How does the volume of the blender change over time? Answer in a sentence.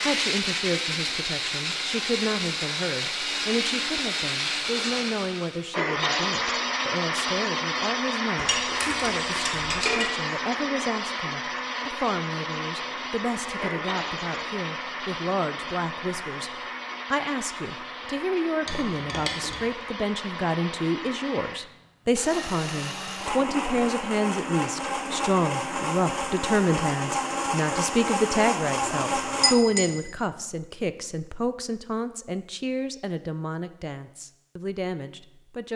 The volume of the blender goes down, then up.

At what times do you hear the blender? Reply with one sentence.
You can hear the blender from 0.0 to 29.6 s.